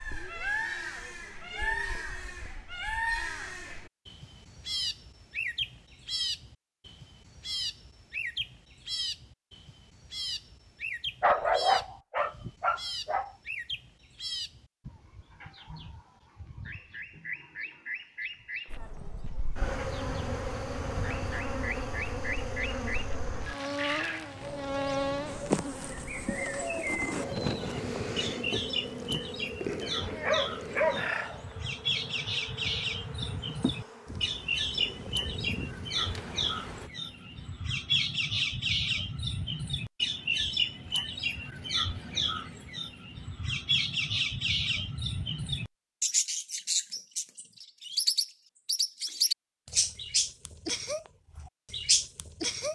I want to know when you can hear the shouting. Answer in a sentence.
The shouting can't be heard in this clip.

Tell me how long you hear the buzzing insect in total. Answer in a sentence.
You can hear the buzzing insect for 18 seconds altogether.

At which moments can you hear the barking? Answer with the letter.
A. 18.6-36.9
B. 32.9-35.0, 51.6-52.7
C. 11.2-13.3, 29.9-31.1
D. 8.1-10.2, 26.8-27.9
C.